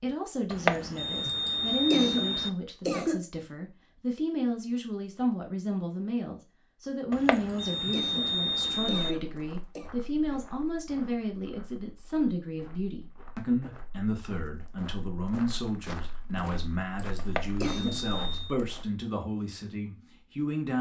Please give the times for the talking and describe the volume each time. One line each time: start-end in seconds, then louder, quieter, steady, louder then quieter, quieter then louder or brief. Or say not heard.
0.0-20.7 steady.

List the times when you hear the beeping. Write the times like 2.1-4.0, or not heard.
0.5-2.5, 7.1-9.2, 17.1-18.6.